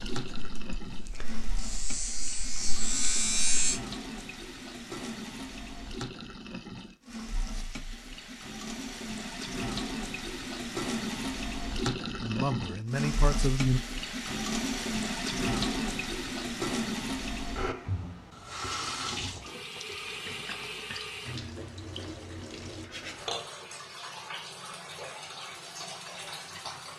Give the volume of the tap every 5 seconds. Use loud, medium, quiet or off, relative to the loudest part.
medium, medium, loud, loud, medium, medium.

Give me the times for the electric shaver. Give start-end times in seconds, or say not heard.
0.2-3.8.